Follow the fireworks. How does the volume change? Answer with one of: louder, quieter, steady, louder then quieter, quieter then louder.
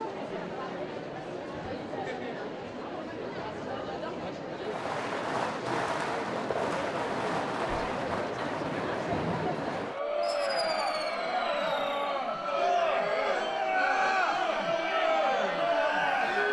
quieter.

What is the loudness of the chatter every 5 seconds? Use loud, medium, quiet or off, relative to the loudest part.
medium, medium, loud, loud.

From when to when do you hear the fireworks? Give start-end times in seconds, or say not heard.
4.5-12.2.